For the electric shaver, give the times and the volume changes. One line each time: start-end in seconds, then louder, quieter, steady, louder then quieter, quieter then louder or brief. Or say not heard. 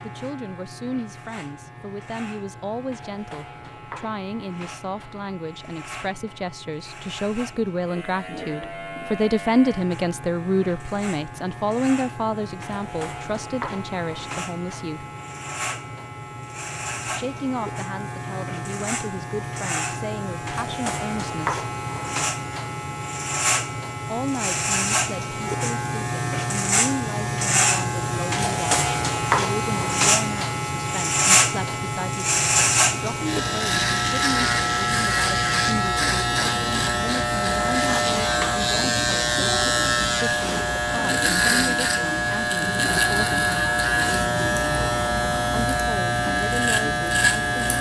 0.0-47.7 louder.